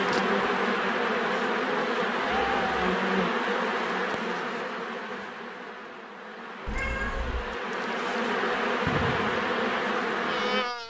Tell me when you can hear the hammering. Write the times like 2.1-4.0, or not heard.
not heard.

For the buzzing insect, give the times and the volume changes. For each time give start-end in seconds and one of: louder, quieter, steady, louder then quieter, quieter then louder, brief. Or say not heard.
0.0-10.8 quieter then louder.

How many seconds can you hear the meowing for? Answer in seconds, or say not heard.
2 s.